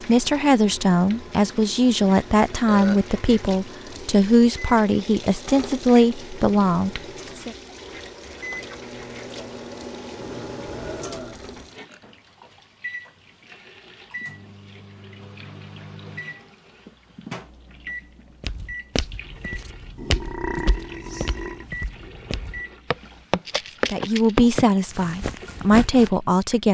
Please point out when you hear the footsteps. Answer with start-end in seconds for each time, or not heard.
18.4-26.1.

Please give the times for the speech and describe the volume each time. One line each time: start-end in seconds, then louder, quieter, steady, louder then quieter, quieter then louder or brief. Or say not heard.
0.0-7.5 steady
23.9-26.6 brief.